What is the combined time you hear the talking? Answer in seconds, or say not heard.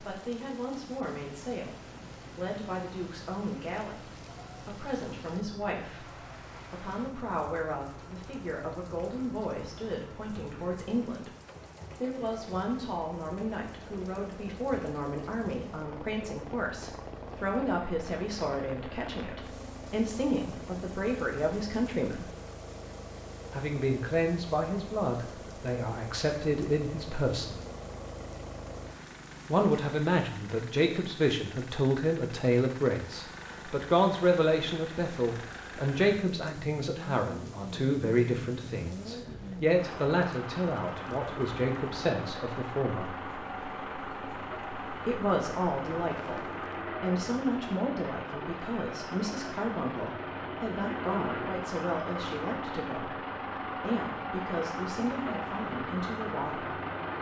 51 s.